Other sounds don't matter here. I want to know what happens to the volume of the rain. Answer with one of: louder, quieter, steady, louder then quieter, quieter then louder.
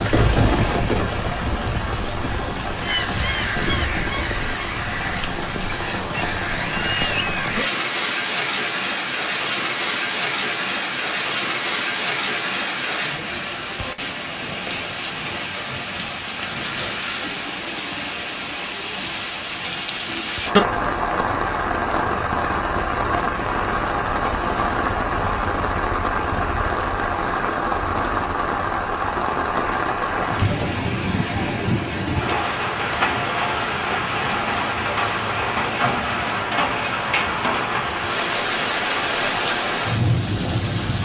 steady.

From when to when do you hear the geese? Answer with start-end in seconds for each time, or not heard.
2.8-7.7.